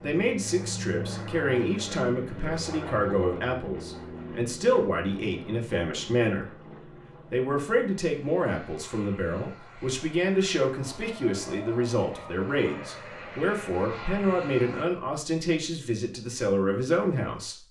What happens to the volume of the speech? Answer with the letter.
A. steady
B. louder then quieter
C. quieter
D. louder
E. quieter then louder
A.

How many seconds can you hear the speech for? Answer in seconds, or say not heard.
17 s.